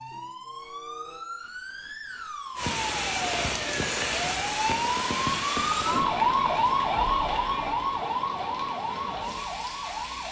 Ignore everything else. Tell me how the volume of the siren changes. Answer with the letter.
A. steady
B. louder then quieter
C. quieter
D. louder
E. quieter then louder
B.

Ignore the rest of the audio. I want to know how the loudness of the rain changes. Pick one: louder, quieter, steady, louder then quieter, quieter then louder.
quieter.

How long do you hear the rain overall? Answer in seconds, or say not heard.
8 s.